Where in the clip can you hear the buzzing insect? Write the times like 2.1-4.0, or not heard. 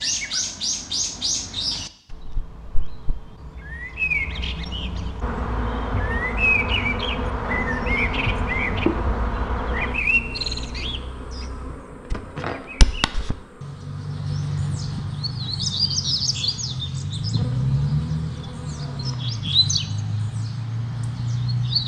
5.2-19.1.